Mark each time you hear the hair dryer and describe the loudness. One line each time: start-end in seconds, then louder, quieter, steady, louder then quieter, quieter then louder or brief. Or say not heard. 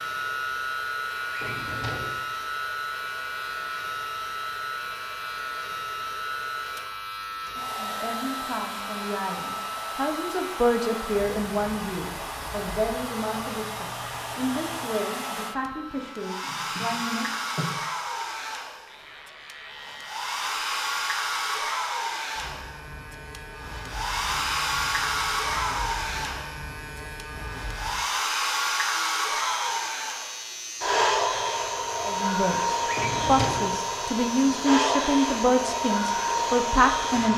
0.0-37.3 louder.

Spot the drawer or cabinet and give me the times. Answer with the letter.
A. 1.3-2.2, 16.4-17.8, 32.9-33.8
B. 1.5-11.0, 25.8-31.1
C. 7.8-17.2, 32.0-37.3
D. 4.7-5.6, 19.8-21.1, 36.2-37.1
A.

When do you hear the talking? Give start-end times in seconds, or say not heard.
7.8-17.2, 32.0-37.3.